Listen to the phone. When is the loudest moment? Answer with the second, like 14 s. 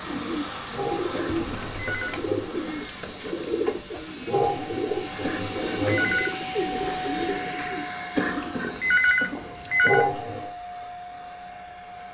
9 s.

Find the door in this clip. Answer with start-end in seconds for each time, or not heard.
not heard.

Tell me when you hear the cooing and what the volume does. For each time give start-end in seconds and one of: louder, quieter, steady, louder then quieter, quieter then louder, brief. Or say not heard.
0.0-7.8 steady.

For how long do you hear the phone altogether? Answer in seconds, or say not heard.
4 s.